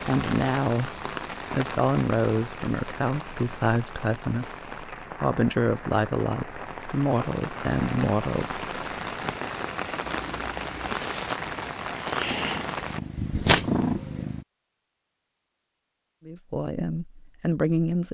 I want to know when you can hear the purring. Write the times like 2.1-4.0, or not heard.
10.1-14.4.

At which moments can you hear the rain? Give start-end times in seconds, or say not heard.
0.0-13.0.